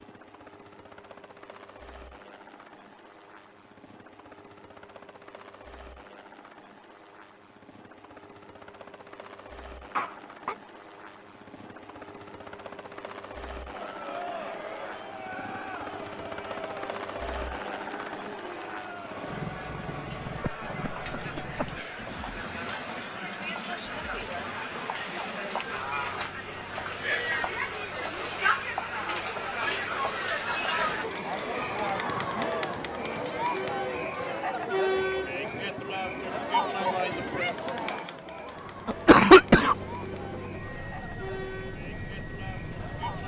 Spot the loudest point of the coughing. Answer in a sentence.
The loudest moment of the coughing is at 39 seconds.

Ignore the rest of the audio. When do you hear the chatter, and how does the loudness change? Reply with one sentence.
You can hear the chatter from 13.7 to 43.2 s, getting louder then quieter.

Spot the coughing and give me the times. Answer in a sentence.
The coughing can be heard from 9.9 to 10.6 s, from 20.2 to 21.7 s and from 38.9 to 39.8 s.